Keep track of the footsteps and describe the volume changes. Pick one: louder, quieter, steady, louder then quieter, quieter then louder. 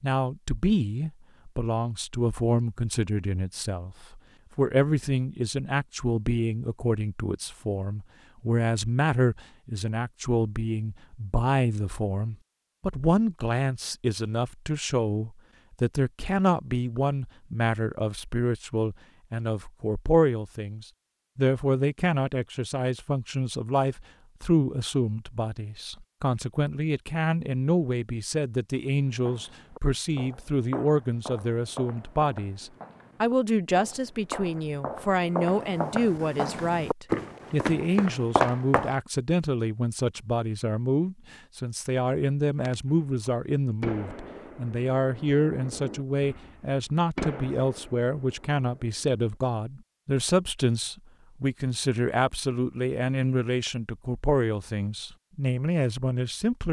louder.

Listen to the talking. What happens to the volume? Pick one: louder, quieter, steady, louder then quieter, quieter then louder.
steady.